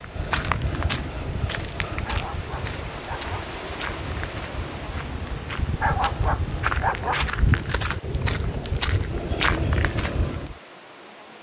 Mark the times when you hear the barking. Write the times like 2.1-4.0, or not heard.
2.0-3.5, 5.8-7.3.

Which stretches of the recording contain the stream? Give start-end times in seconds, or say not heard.
0.0-11.3.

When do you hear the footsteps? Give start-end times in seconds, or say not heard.
0.0-10.6.